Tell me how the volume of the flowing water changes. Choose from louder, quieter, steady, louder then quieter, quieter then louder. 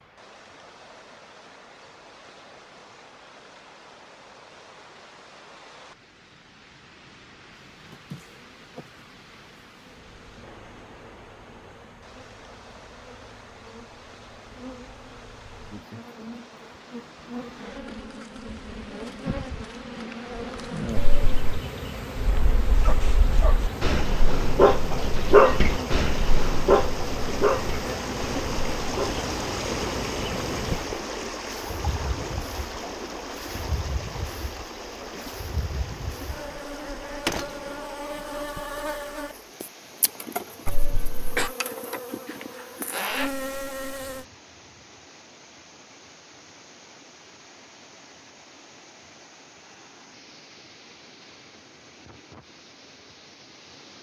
louder then quieter.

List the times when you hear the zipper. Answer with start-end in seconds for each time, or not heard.
42.2-43.4.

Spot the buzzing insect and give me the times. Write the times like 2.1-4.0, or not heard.
7.7-44.2.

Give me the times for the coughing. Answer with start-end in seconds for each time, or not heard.
20.9-21.6, 40.6-41.5.